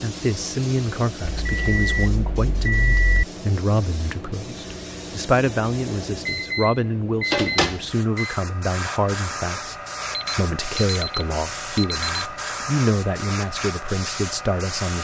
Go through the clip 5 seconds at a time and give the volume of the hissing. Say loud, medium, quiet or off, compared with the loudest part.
medium, loud, loud.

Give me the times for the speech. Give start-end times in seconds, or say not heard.
0.0-9.8, 10.3-15.0.